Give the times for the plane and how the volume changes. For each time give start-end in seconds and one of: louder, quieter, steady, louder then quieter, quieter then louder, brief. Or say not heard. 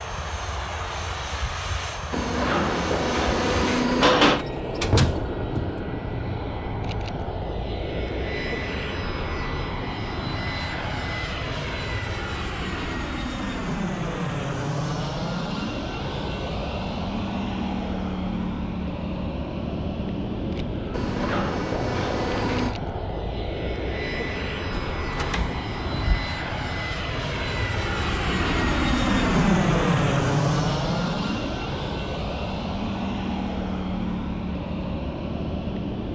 0.0-36.0 louder.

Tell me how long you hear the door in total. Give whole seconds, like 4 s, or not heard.
3 s.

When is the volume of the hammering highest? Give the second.
4 s.